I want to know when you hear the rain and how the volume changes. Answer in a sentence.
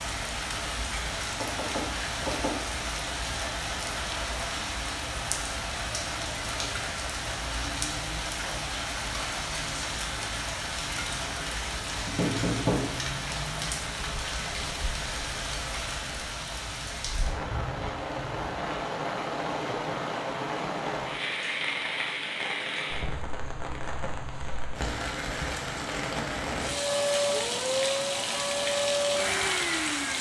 You can hear the rain from 0.0 to 30.1 s, at a steady volume.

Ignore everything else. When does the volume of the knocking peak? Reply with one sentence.
The volume of the knocking peaks at 13 seconds.